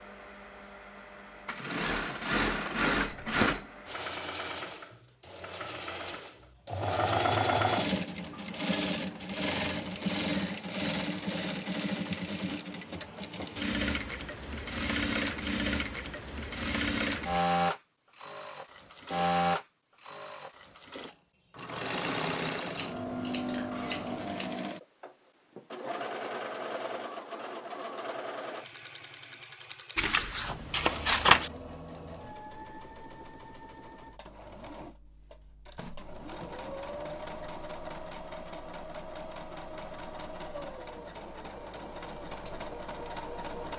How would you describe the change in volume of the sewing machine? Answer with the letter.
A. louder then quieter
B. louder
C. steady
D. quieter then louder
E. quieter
E.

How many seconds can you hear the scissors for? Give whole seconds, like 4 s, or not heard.
4 s.